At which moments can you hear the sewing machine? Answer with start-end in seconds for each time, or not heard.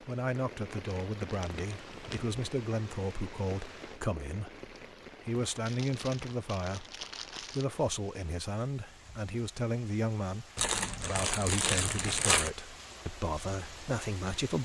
not heard.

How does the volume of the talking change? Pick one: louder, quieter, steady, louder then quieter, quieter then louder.
steady.